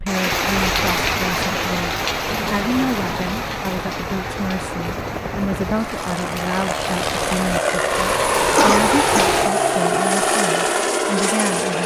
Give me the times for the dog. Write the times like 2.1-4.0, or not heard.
not heard.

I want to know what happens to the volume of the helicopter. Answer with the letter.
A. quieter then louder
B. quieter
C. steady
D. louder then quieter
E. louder
E.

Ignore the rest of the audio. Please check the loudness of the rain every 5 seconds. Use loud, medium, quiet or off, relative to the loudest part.
loud, loud, off.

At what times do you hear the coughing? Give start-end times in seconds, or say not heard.
8.6-9.3.